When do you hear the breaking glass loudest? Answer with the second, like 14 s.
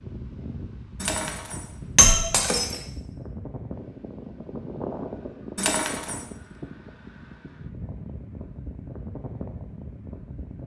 2 s.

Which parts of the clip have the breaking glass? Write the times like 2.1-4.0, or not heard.
1.0-2.8, 5.5-6.2.